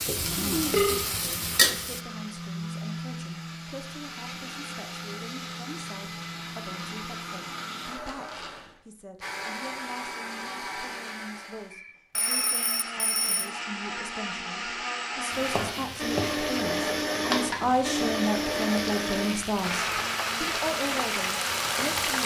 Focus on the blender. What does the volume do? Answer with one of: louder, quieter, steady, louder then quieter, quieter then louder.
louder.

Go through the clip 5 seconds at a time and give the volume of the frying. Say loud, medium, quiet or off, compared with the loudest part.
loud, off, off, medium, loud.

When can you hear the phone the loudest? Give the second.
1 s.